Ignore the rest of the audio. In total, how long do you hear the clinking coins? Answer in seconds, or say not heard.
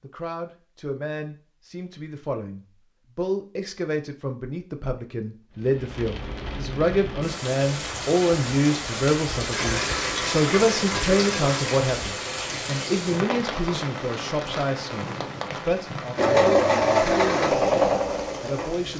2 s.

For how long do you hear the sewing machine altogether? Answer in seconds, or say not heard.
3 s.